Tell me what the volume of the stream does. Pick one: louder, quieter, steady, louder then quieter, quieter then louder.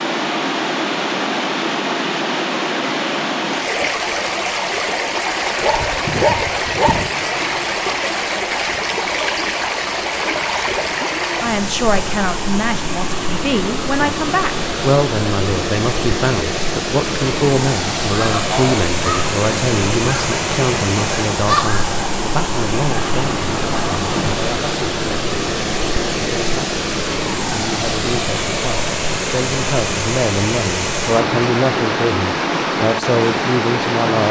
steady.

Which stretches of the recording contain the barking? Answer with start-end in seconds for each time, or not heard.
5.6-7.1.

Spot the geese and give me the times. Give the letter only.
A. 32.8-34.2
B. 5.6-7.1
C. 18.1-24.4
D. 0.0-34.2
C.